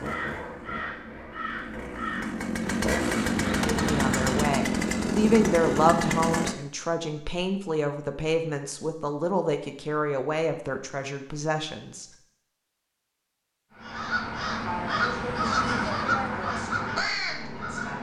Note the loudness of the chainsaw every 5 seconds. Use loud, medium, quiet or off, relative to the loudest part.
loud, loud, off, off.